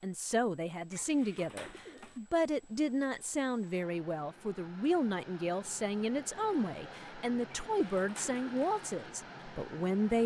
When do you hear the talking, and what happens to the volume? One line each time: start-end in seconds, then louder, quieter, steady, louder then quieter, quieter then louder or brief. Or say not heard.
0.0-10.2 steady.